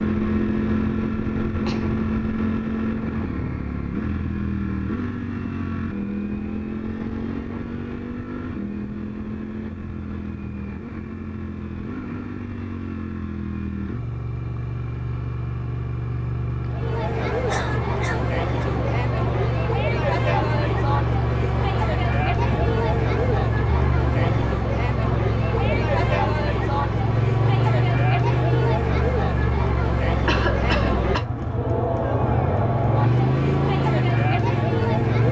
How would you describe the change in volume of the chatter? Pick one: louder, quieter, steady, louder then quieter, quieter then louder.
steady.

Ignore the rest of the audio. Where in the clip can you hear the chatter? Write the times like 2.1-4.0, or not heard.
16.6-35.2.